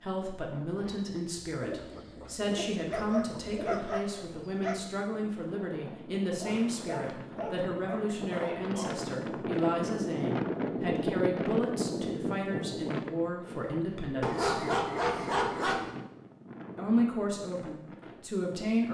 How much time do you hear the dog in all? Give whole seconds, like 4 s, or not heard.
6 s.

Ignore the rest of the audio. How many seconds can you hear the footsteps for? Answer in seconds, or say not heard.
not heard.